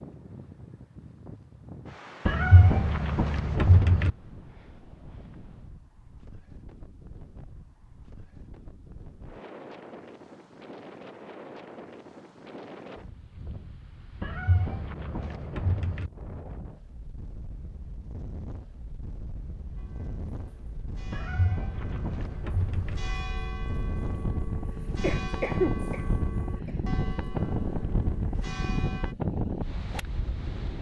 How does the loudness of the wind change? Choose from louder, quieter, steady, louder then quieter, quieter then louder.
louder.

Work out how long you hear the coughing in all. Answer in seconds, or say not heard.
2 s.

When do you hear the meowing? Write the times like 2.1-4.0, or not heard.
2.2-4.1, 14.2-16.1, 21.1-23.0.